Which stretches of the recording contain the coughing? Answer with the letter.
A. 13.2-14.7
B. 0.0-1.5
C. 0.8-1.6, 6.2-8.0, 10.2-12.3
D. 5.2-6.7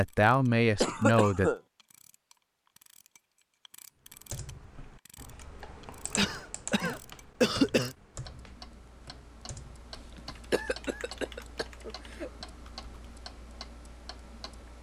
C.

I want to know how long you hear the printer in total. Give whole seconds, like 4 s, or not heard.
not heard.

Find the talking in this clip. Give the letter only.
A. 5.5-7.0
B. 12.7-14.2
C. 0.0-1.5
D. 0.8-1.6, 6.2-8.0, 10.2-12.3
C.